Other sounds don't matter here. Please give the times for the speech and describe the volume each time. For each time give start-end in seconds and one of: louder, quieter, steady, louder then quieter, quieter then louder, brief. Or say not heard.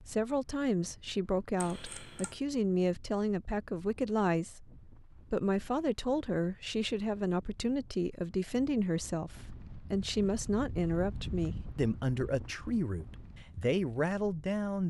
0.0-14.8 steady.